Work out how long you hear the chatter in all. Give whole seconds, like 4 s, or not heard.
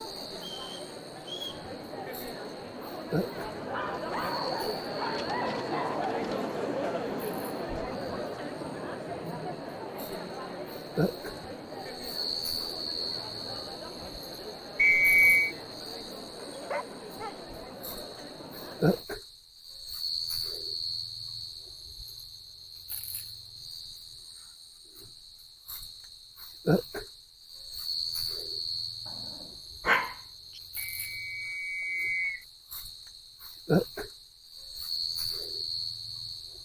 19 s.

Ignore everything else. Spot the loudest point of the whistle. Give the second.
15 s.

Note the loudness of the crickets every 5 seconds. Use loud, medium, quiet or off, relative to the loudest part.
medium, quiet, loud, loud, loud, loud, loud, loud.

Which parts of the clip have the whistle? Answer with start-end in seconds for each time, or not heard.
0.4-1.6, 14.8-15.6, 30.8-32.5.